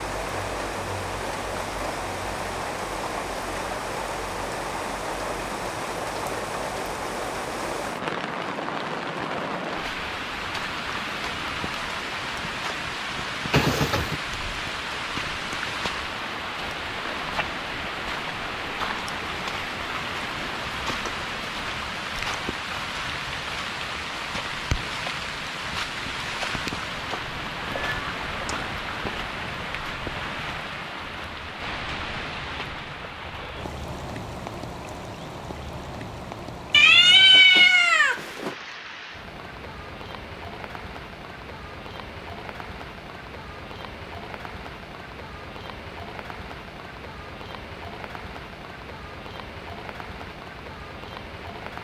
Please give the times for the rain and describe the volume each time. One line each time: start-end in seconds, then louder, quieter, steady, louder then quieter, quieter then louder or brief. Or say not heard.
0.0-51.8 quieter.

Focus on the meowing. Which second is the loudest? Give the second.
37 s.